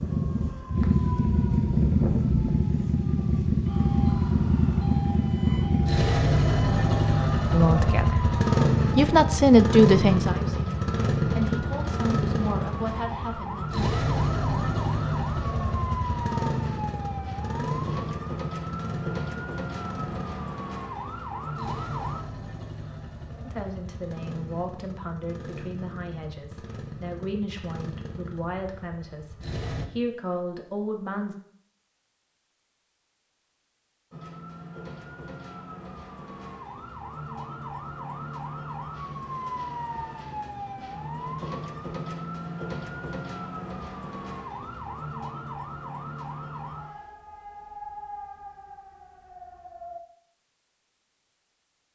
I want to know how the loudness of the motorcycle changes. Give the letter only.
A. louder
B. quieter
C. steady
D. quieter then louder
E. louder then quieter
B.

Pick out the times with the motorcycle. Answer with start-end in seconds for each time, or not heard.
0.0-29.9.